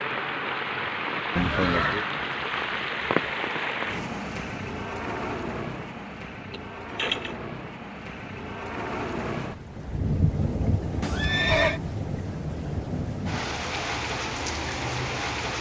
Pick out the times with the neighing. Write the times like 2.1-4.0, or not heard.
1.4-2.0, 6.5-7.3, 11.0-11.8.